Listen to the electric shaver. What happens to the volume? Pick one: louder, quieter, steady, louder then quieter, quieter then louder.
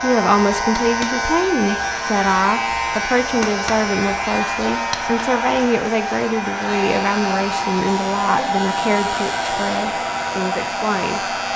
quieter.